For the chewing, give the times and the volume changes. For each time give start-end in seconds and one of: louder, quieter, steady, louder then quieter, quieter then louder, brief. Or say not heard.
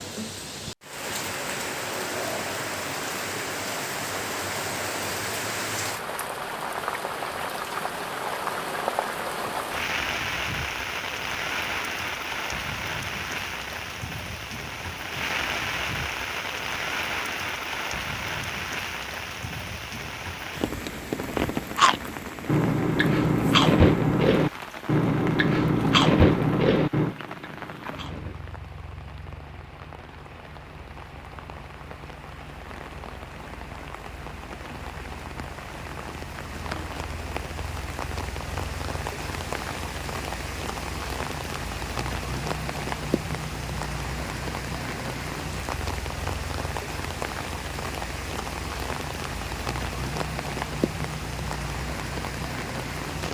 21.4-28.4 quieter.